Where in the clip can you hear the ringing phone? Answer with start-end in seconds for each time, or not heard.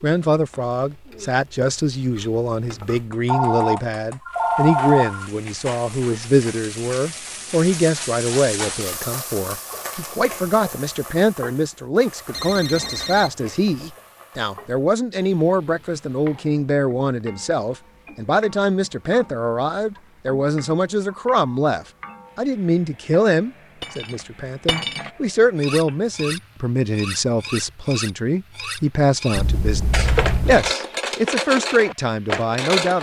3.3-5.3, 12.3-13.8, 29.4-30.8.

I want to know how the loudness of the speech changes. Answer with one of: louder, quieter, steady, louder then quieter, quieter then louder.
steady.